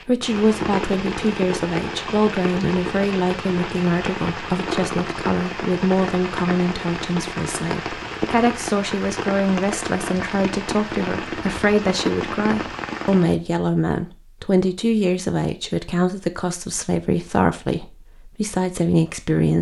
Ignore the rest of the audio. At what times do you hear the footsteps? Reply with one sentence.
You can't hear the footsteps here.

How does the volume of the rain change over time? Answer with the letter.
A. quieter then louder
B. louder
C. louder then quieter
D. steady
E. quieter
D.